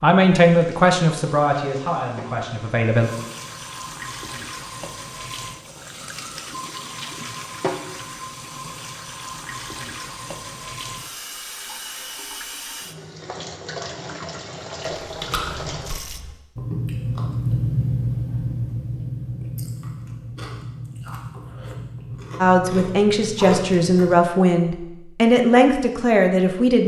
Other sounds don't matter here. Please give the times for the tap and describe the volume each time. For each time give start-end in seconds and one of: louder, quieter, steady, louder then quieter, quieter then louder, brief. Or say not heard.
0.1-16.2 louder.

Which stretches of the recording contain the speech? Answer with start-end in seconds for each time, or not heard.
0.0-3.1, 22.4-26.8.